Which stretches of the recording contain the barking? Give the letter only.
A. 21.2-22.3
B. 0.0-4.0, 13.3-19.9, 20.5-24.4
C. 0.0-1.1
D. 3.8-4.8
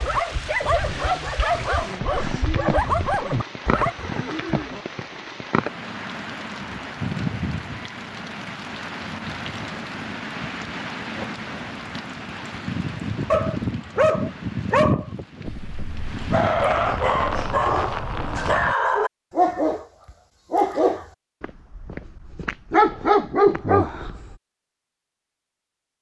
B.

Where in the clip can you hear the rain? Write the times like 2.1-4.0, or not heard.
0.0-18.8.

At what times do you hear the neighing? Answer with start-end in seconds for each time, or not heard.
3.8-4.8.